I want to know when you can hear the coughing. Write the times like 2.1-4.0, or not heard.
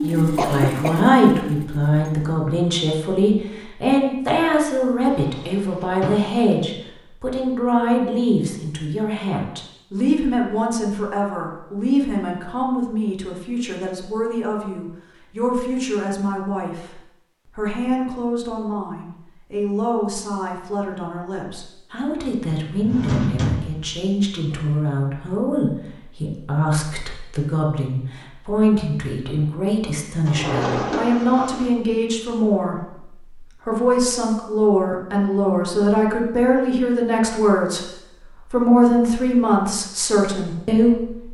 0.1-1.1.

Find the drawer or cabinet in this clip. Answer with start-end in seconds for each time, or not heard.
5.0-6.5, 22.7-24.1, 30.2-31.7.